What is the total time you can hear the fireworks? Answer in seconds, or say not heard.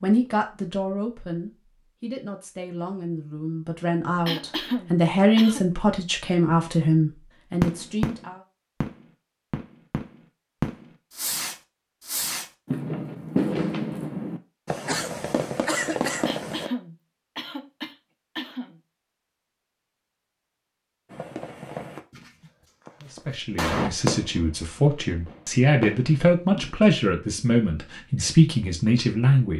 15 s.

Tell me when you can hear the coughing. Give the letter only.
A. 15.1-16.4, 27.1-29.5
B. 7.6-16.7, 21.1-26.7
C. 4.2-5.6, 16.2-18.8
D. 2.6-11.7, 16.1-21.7
C.